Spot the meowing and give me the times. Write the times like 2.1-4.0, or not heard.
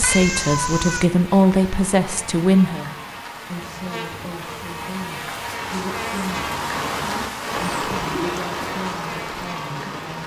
0.0-1.1.